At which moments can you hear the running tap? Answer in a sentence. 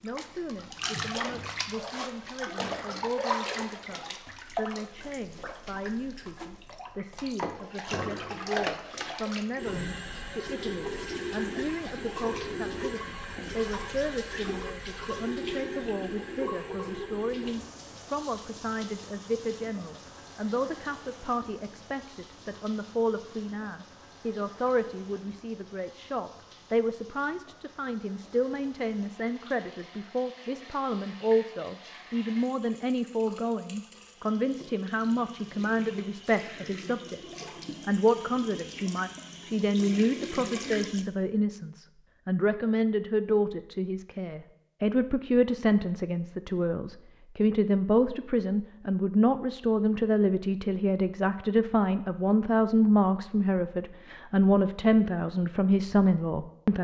You can hear the running tap from 0.0 to 41.0 s.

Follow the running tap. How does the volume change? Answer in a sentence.
The volume of the running tap goes down, then up.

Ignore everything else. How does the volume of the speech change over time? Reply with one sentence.
The loudness of the speech goes up.